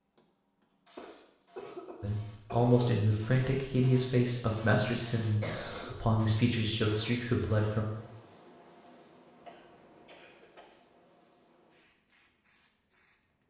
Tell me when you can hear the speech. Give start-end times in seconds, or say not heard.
2.0-7.8.